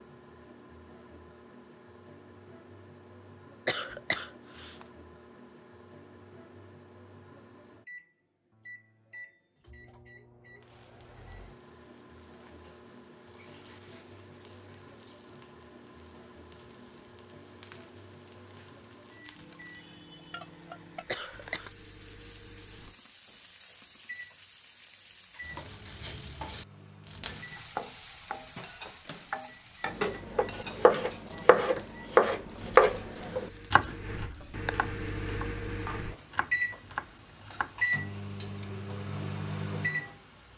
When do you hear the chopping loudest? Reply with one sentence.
The volume of the chopping peaks at 33 seconds.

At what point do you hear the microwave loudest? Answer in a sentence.
The volume of the microwave peaks at 38 seconds.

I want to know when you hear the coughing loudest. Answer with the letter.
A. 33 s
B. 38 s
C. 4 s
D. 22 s
C.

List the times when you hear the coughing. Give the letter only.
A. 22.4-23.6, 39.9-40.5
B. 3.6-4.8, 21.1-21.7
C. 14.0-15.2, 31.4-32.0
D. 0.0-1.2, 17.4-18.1
B.